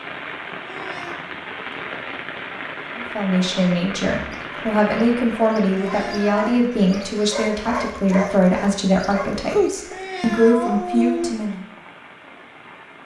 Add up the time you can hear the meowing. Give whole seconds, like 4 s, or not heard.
3 s.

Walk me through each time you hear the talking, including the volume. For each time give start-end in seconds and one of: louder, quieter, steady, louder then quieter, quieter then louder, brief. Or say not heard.
3.0-11.6 steady.